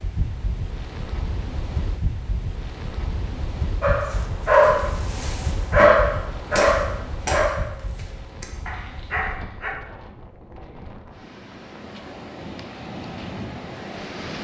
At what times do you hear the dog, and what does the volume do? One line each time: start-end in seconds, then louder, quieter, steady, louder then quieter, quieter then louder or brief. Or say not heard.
3.8-9.7 quieter.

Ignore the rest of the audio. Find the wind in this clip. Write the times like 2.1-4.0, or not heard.
0.0-14.3.